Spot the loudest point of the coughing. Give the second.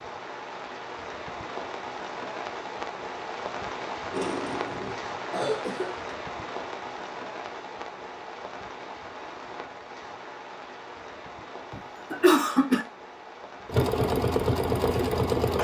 12 s.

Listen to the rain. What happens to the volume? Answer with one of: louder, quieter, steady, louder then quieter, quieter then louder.
quieter.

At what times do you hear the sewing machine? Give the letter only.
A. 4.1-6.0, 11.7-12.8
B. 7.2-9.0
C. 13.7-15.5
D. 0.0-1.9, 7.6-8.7
C.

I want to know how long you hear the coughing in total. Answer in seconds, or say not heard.
3 s.